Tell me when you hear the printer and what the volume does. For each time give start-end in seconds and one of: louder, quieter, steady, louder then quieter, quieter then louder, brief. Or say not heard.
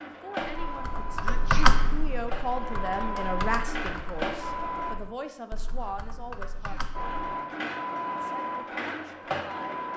0.0-5.0 quieter then louder
7.0-9.9 brief.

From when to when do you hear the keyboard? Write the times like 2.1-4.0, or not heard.
0.5-7.2.